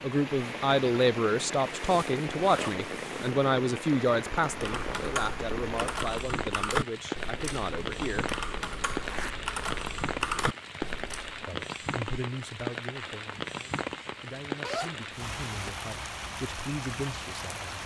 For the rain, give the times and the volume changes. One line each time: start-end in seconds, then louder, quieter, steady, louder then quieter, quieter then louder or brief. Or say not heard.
0.0-17.8 steady.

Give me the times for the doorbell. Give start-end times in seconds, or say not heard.
not heard.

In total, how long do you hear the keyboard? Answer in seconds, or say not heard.
7 s.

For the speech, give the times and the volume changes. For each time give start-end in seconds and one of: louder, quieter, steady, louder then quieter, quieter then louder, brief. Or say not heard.
0.0-8.2 quieter
11.4-17.8 quieter then louder.